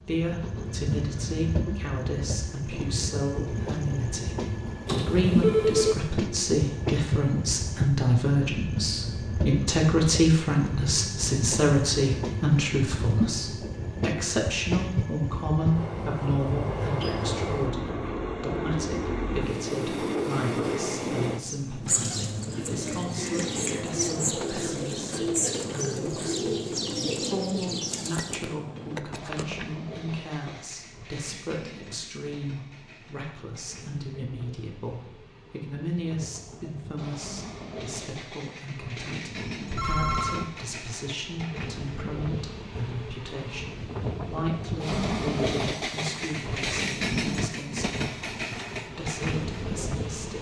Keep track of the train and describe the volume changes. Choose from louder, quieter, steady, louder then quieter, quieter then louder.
quieter then louder.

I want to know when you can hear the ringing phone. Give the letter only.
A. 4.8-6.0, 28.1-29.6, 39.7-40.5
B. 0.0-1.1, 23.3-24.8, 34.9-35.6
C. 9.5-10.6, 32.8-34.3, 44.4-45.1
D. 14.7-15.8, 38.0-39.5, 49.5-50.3
A.